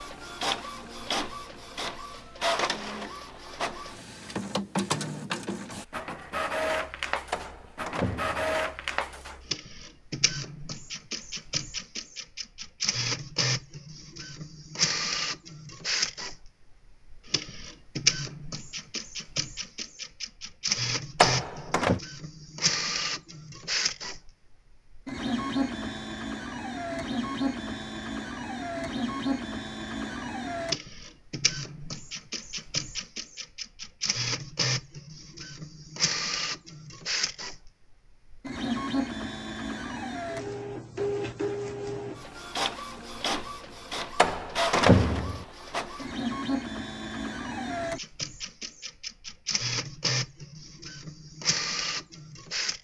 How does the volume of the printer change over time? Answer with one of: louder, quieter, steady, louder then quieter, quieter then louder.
steady.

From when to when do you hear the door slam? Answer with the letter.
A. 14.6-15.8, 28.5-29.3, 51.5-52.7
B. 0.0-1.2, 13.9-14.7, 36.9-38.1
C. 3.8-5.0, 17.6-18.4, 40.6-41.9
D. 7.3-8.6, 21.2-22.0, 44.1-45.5
D.